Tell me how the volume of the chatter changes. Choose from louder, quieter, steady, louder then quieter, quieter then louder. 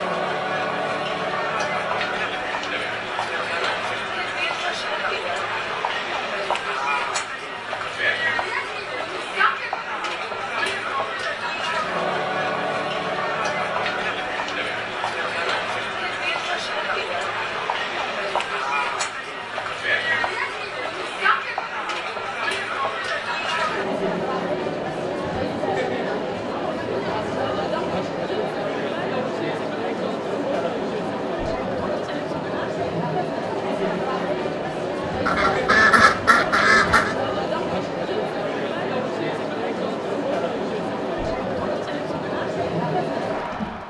steady.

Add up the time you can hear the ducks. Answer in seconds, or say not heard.
2 s.